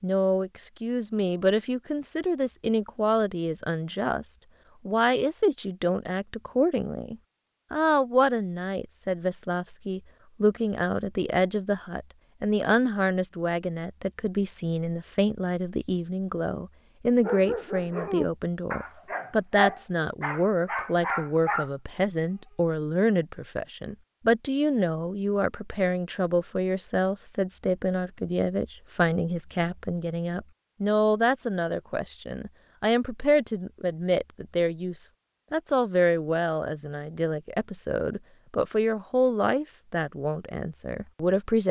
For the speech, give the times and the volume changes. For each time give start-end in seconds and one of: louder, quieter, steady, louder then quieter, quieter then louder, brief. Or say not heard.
0.0-41.6 steady.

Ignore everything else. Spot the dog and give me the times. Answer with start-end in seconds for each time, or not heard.
17.2-22.5.